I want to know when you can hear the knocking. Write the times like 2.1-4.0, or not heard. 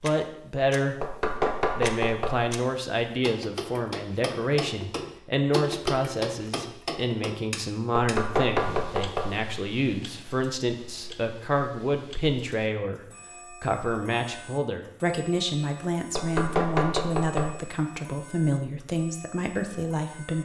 1.0-2.4, 8.0-9.3, 16.1-17.5.